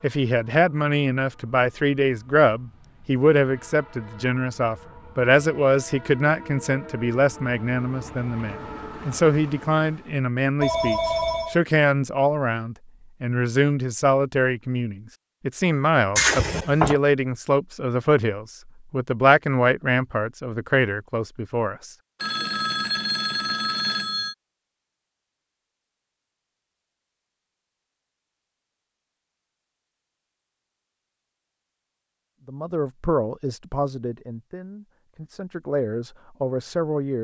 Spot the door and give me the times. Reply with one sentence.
The door can be heard from 16.1 to 17.0 s.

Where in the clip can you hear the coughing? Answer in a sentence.
The coughing can't be heard in this clip.